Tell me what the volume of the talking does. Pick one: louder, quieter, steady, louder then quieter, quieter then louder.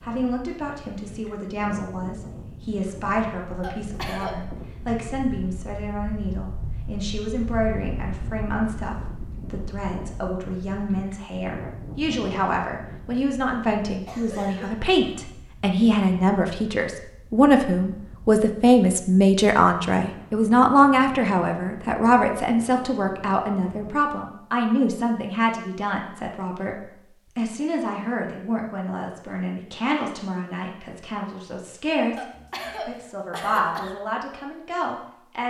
louder then quieter.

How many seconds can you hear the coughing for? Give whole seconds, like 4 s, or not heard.
4 s.